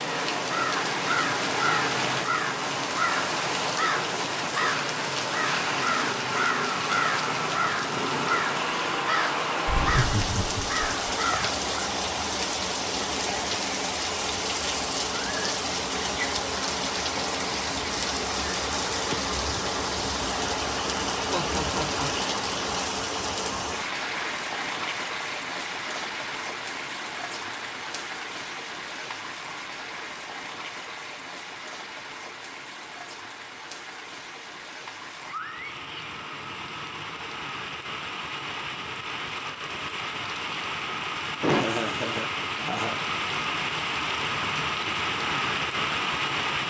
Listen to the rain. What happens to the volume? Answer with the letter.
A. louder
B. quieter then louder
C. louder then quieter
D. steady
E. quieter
B.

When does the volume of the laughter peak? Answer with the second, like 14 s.
42 s.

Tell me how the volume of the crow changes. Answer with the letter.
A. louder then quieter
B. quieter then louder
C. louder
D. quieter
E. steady
E.